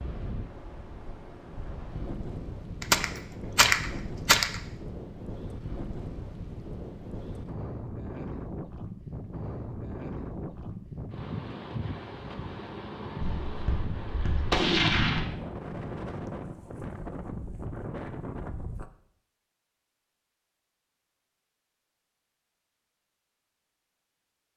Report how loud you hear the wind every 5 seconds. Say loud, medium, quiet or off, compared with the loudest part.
loud, loud, loud, loud, off.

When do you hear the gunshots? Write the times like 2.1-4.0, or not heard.
2.9-4.5, 13.2-15.2.